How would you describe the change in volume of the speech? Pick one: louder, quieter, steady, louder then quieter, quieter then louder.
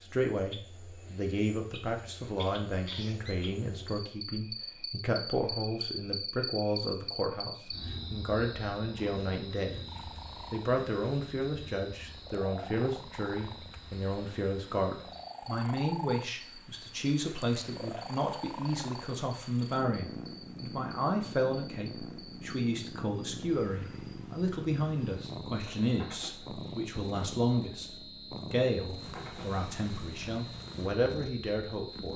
steady.